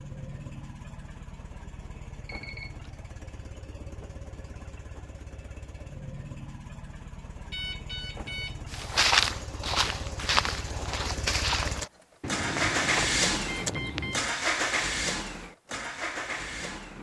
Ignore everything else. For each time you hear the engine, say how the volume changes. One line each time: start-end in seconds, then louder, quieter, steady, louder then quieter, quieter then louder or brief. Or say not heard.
0.0-16.9 louder.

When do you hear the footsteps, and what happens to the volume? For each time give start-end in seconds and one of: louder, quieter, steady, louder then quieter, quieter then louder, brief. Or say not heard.
8.7-14.3 quieter.